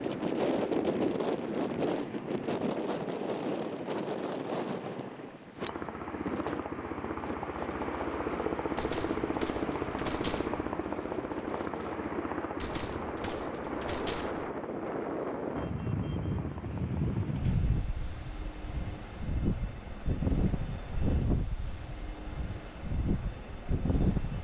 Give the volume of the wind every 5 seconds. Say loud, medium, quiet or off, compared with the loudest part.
loud, medium, medium, loud, loud.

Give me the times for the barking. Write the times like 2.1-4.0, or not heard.
not heard.